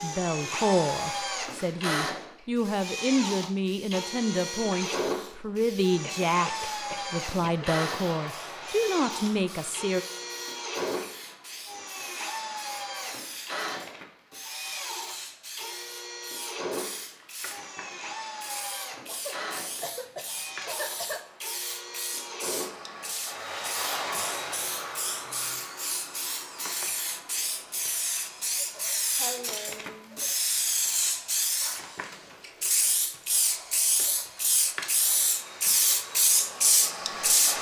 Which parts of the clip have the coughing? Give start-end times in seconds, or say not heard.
6.0-7.7, 19.1-21.2, 28.6-30.4.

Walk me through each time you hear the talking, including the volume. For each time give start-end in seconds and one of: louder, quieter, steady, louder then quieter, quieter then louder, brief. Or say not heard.
0.0-10.1 steady.